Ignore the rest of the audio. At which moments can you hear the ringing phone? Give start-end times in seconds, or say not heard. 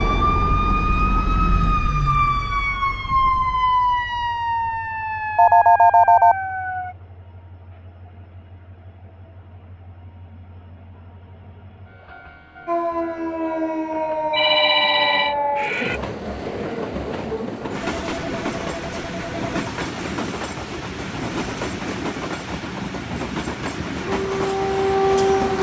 5.3-6.3, 14.3-15.3, 17.8-19.5.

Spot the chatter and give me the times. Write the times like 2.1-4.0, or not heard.
not heard.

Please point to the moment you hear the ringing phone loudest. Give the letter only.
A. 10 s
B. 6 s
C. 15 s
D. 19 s
B.